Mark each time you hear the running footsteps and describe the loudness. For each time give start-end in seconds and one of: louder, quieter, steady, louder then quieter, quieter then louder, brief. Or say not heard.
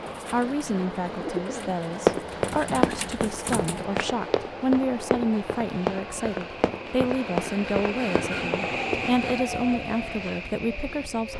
2.0-9.1 quieter.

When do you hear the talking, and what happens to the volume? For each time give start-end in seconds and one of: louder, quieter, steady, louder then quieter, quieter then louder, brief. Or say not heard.
0.3-11.3 steady.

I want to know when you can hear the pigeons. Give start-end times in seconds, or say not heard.
0.0-3.9.